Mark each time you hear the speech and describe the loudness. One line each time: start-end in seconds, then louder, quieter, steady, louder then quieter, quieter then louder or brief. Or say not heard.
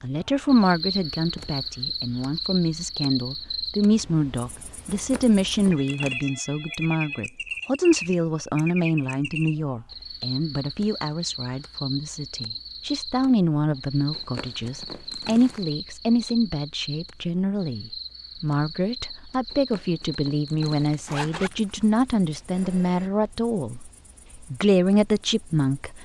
0.0-23.9 steady
24.5-26.0 brief.